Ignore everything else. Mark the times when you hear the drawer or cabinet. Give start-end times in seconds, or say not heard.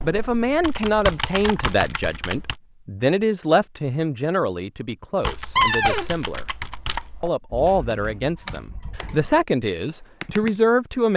5.5-6.0.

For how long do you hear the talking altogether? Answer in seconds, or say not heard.
10 s.